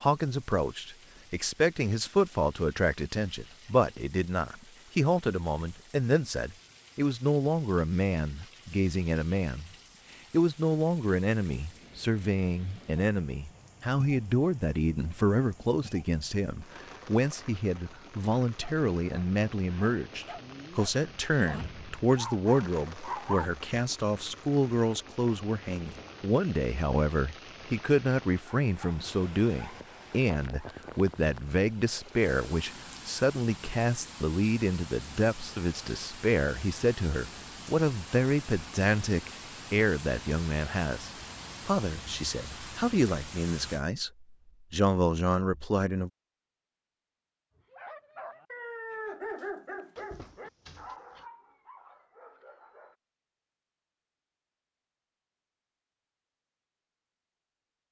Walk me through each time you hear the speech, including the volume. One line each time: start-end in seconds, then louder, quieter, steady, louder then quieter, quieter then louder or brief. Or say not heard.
0.0-9.7 steady
10.3-46.1 steady.